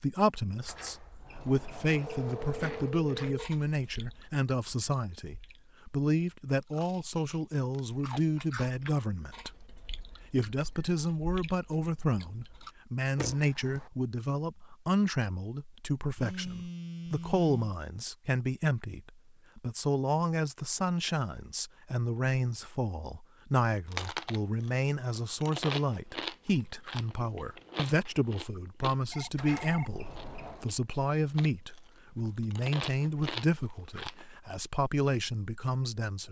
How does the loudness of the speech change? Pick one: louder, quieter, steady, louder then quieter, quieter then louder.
steady.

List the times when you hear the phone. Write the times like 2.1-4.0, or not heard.
2.0-3.5, 16.1-17.8, 29.1-29.9.